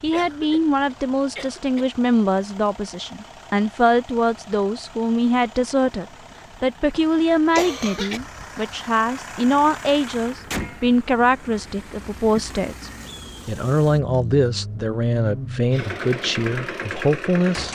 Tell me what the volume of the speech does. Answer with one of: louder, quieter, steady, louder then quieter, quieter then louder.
steady.